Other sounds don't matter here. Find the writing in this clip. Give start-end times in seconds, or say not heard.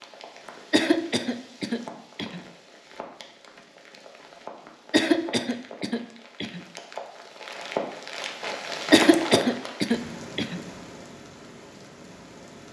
not heard.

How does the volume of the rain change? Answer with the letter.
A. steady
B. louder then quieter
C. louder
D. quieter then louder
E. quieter
B.